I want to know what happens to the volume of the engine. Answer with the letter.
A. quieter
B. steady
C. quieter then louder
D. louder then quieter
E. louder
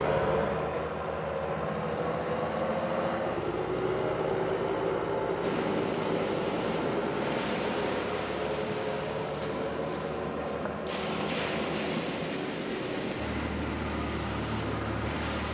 A.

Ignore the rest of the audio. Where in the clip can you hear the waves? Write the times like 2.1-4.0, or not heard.
5.4-15.4.